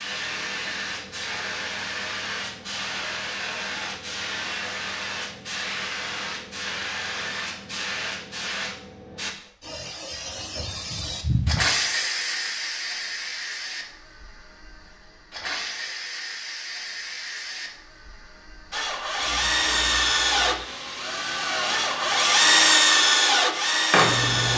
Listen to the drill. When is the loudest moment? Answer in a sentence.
The volume of the drill peaks at 23 seconds.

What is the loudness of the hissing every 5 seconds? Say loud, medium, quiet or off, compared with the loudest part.
loud, loud, loud, medium, loud.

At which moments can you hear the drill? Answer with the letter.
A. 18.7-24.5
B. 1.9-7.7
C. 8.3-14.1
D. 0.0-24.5
A.